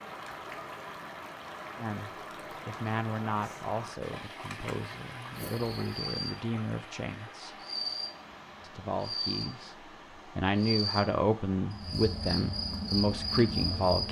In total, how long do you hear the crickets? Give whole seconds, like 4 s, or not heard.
9 s.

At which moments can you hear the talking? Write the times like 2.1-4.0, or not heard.
1.8-7.5, 8.7-14.0.